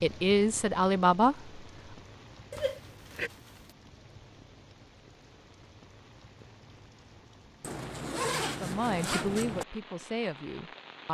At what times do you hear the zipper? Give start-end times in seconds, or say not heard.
2.5-3.7, 7.6-9.7.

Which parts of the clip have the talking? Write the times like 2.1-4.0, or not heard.
0.0-1.5, 8.6-11.1.